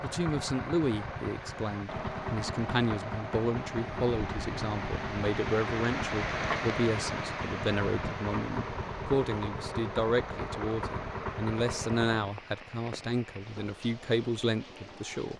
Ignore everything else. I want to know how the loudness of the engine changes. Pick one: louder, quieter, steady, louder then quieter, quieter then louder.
quieter.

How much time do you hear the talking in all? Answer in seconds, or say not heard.
15 s.